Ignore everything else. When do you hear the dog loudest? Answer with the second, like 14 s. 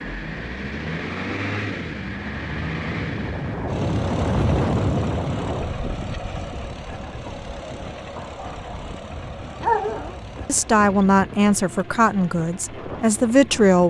10 s.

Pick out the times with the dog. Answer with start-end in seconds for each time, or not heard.
8.2-10.4.